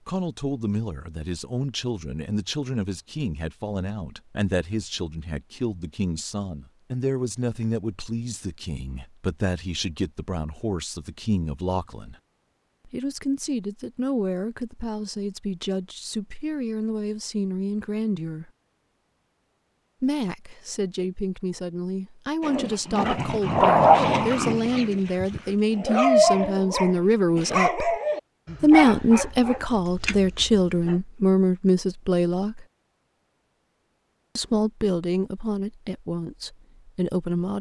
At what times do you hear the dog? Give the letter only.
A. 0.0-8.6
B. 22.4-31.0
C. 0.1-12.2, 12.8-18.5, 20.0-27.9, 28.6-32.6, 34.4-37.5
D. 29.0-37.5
B.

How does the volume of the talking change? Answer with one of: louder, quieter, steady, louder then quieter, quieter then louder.
louder.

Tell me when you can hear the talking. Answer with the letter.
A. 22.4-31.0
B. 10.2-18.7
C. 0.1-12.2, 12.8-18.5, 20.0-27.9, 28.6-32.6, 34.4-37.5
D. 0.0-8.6
C.